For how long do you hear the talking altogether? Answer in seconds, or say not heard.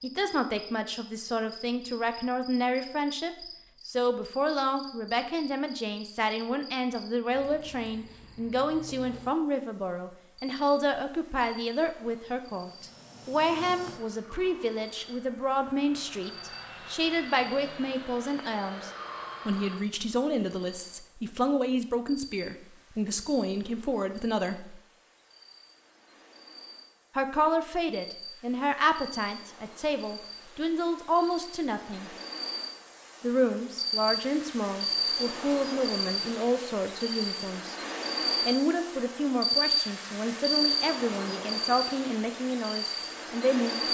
40 s.